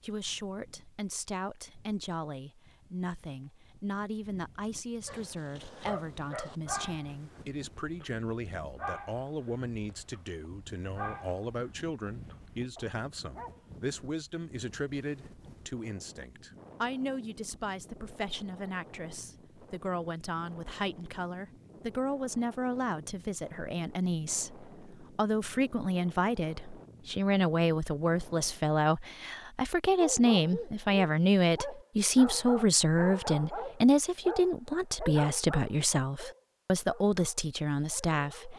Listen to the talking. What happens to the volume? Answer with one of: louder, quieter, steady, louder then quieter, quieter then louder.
louder.